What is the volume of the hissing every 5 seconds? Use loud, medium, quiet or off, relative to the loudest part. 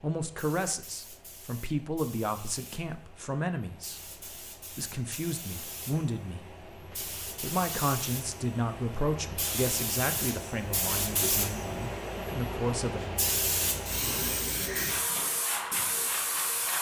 quiet, medium, loud, loud.